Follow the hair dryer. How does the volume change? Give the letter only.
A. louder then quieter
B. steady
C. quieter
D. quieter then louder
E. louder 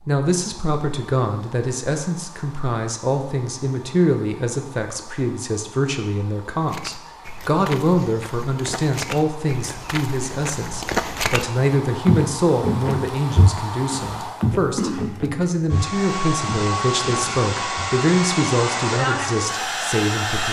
E.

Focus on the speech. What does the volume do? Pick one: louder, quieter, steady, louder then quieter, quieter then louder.
steady.